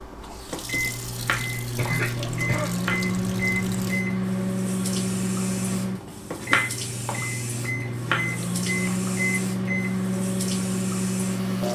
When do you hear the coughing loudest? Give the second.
2 s.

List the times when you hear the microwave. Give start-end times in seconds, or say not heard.
0.0-11.6.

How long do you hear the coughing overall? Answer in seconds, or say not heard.
2 s.